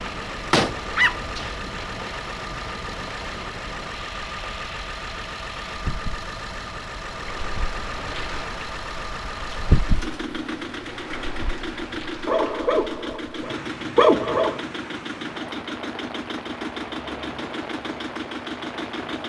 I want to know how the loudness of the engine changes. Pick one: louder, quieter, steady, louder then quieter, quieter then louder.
steady.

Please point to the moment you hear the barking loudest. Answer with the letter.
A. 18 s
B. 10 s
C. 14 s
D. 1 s
C.